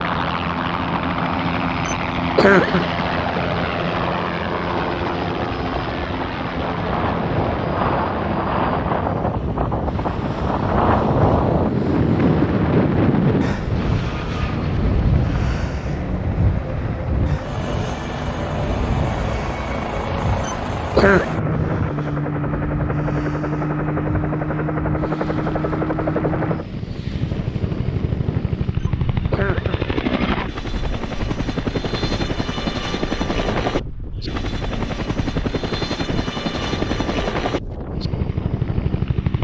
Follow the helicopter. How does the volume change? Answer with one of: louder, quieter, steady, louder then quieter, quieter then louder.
quieter then louder.